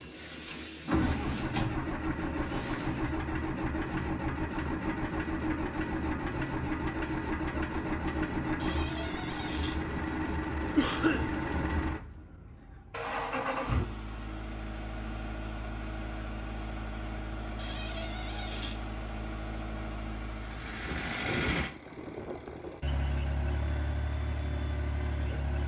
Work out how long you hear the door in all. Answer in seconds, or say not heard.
3 s.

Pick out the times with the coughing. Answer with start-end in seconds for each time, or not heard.
10.8-11.2.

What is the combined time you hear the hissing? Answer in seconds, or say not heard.
3 s.